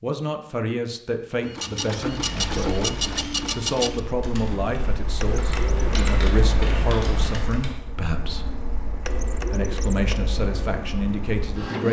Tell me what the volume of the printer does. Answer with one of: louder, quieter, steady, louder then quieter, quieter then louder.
quieter.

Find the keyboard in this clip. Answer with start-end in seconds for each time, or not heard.
2.1-7.8.